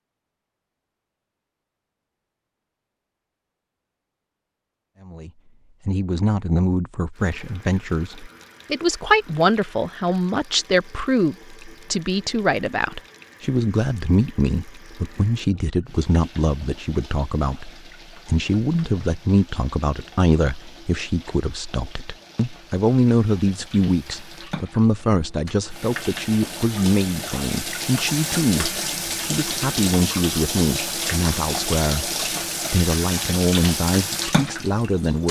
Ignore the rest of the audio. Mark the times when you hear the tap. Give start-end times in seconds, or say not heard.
7.1-35.2.